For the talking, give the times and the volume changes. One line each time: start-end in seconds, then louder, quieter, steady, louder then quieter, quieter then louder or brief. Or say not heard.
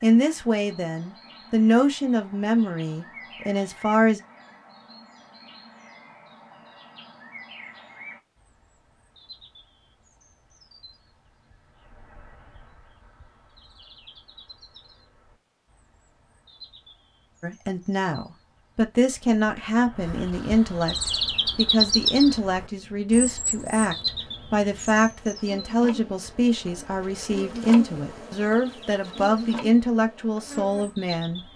0.0-4.2 louder then quieter
17.4-31.4 steady.